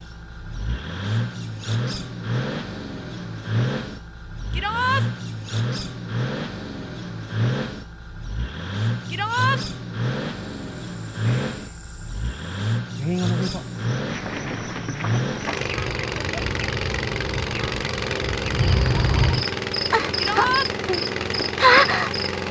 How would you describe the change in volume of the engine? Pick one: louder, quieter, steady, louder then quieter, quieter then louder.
steady.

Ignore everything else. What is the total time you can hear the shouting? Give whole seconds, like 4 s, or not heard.
2 s.